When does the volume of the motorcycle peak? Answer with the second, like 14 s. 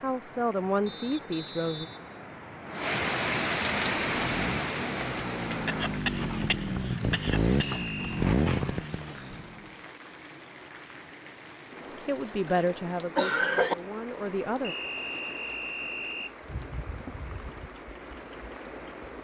8 s.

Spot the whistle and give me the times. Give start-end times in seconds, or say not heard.
0.8-2.9, 7.6-8.2, 14.6-16.4.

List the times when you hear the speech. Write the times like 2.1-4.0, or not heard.
0.0-1.9, 12.1-14.8.